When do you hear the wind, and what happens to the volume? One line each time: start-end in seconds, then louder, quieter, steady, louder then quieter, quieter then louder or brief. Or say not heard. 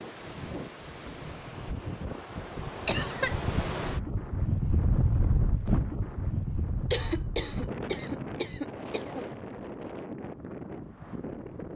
0.0-11.7 louder then quieter.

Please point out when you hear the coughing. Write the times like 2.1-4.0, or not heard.
2.9-3.4, 6.9-9.3.